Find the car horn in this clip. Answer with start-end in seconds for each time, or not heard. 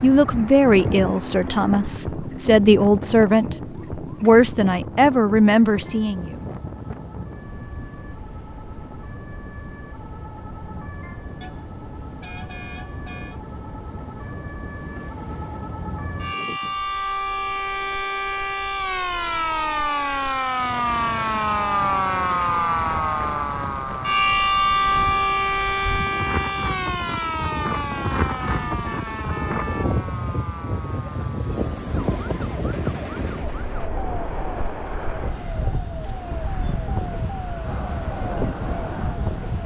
11.4-13.4, 28.4-30.0.